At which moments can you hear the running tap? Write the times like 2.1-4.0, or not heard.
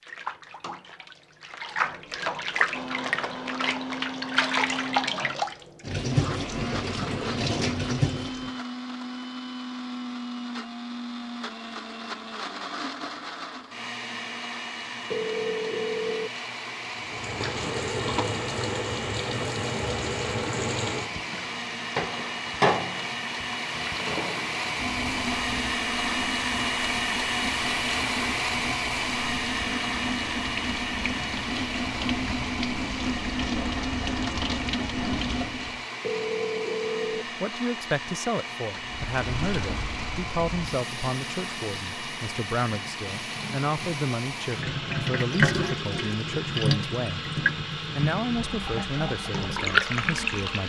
0.0-8.6, 16.9-35.8, 38.8-50.6.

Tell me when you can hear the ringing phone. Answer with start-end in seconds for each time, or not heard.
15.1-16.3, 36.0-37.2.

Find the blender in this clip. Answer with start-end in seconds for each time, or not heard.
2.7-50.6.